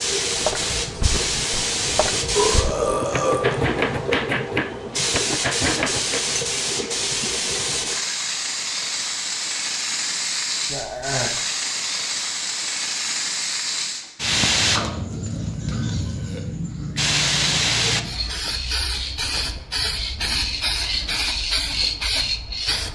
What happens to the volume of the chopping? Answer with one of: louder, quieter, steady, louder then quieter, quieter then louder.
louder.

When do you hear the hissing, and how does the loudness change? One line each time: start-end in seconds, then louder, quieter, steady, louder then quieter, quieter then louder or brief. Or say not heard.
0.0-22.9 steady.